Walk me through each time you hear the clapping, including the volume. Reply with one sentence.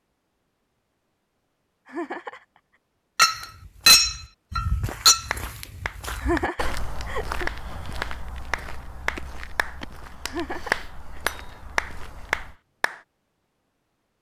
The clapping can be heard from 5.3 to 13.0 s, getting louder.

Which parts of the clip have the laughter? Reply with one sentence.
The laughter can be heard from 1.9 to 2.5 s, from 6.2 to 7.5 s and from 10.2 to 11.2 s.